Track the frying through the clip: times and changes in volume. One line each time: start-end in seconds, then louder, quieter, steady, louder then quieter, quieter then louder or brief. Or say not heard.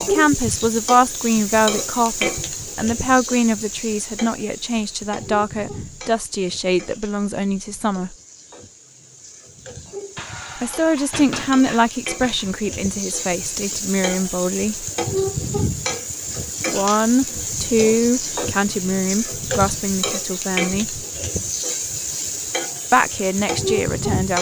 0.0-24.3 quieter then louder.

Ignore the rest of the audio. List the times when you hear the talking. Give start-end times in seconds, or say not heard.
0.0-8.2, 10.6-14.8, 16.7-21.0, 22.9-24.3.